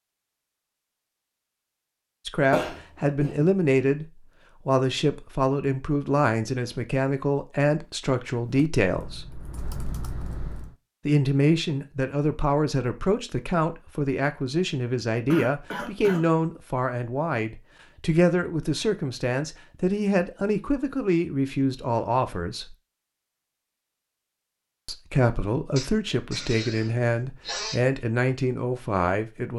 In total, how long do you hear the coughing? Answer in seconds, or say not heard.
4 s.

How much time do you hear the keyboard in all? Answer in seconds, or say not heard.
2 s.